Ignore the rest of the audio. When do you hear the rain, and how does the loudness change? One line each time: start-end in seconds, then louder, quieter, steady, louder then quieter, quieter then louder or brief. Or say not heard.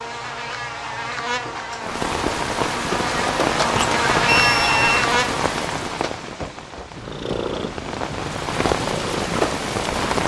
1.8-10.2 quieter then louder.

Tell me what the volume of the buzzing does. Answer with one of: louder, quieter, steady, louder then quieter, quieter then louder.
louder.